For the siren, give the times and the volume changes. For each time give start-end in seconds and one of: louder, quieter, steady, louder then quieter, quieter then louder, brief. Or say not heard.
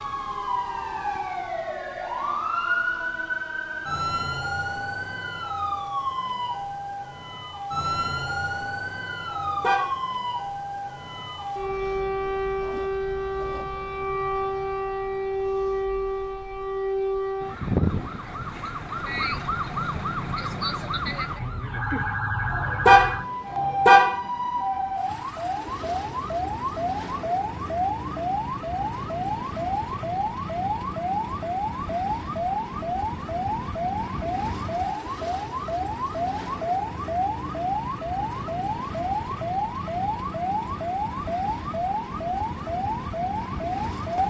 0.0-44.2 steady.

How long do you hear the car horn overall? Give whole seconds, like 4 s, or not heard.
2 s.